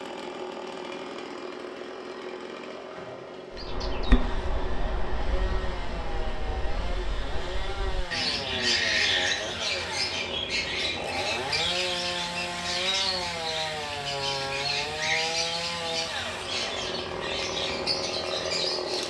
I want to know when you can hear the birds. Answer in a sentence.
The birds can be heard from 3.5 to 19.0 s.